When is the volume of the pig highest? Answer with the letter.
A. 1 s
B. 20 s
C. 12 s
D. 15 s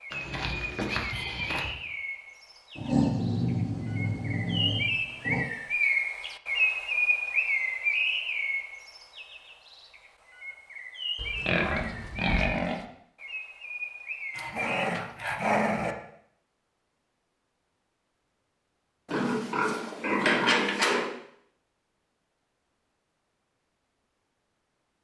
B.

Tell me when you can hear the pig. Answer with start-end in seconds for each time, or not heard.
0.1-1.7, 11.2-12.8, 19.1-21.1.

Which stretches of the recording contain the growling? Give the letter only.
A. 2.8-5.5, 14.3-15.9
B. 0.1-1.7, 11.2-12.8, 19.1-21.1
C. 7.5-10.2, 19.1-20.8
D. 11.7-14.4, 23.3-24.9
A.